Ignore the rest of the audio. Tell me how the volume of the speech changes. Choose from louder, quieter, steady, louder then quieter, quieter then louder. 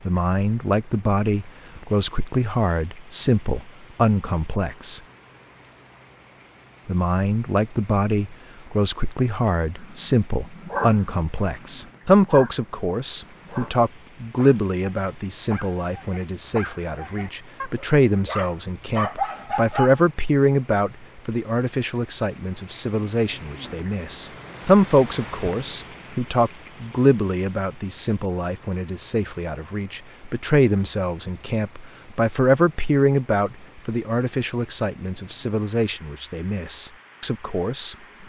steady.